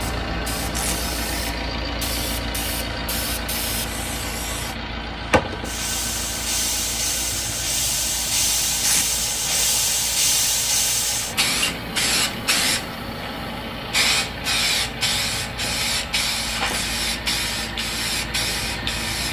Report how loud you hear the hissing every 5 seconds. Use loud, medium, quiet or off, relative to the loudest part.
medium, loud, loud, loud.